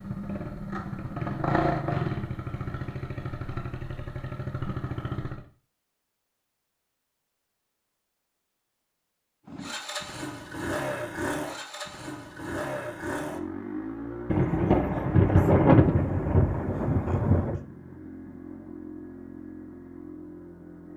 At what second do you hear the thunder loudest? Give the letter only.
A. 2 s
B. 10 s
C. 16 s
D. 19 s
C.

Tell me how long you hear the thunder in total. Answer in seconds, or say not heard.
3 s.